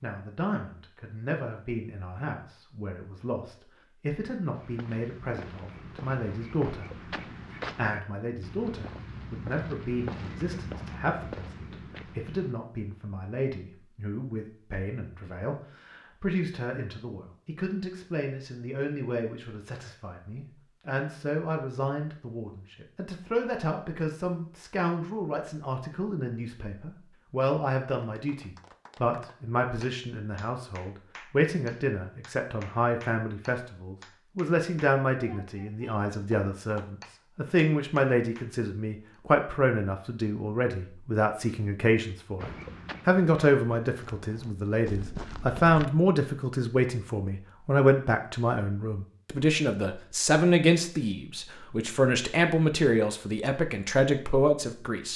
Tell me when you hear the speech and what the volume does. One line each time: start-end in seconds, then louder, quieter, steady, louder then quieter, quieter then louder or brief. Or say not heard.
0.0-55.1 louder.